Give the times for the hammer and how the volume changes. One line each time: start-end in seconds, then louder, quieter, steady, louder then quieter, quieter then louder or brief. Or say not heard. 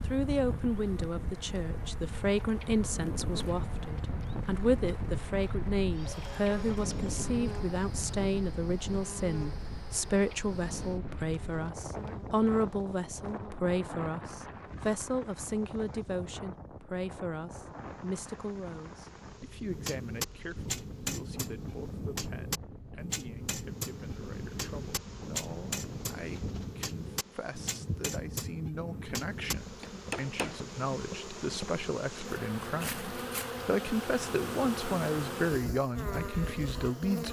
19.6-30.6 steady.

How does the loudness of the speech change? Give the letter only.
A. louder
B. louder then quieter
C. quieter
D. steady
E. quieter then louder
E.